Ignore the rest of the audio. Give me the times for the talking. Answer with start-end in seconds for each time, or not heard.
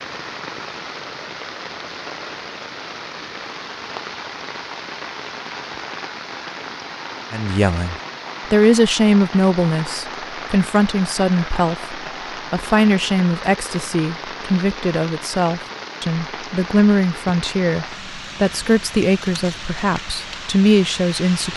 7.3-21.5.